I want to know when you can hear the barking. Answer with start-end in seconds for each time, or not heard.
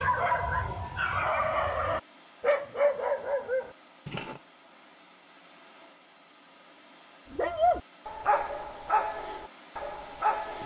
0.0-4.4, 7.3-10.6.